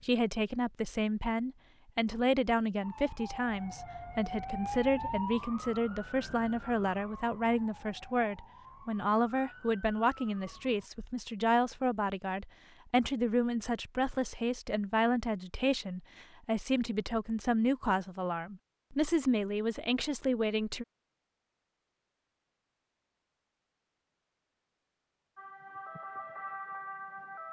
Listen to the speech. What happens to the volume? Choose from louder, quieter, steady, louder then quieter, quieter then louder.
steady.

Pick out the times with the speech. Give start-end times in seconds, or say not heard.
0.0-20.9.